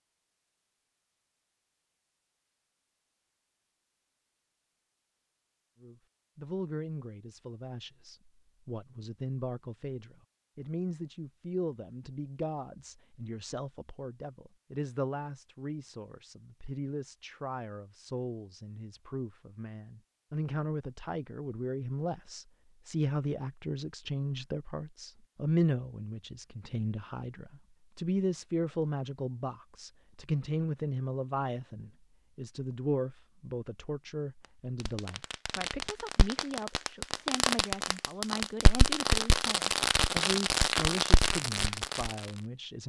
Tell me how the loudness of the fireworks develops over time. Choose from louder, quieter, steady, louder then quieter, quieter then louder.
louder.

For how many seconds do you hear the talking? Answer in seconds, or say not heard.
37 s.